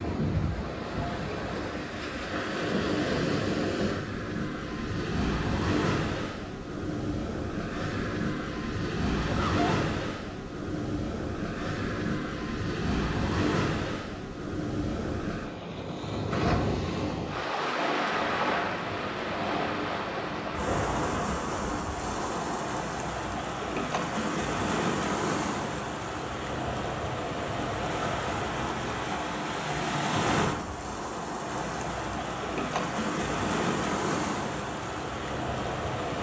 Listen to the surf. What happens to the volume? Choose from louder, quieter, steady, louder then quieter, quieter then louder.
steady.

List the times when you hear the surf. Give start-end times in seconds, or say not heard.
0.0-36.1.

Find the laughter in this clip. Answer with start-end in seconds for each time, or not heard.
9.2-9.9.